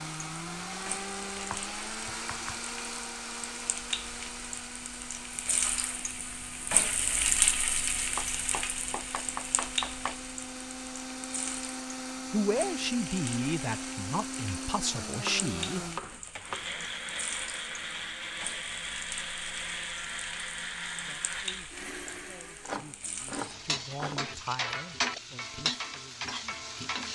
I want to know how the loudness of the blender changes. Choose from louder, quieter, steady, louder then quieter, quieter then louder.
quieter then louder.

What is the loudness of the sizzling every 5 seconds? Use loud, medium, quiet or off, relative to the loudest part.
medium, loud, medium, medium, medium, loud.